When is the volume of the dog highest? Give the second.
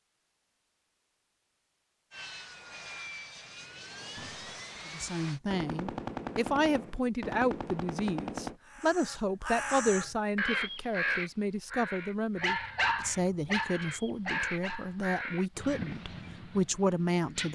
13 s.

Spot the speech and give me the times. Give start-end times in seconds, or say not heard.
4.9-17.4.